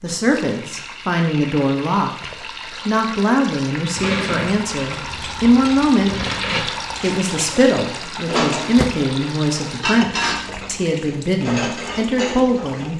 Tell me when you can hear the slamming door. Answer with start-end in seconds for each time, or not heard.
8.0-8.9.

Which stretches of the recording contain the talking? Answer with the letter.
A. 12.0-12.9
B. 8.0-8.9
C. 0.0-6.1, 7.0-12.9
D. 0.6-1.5
C.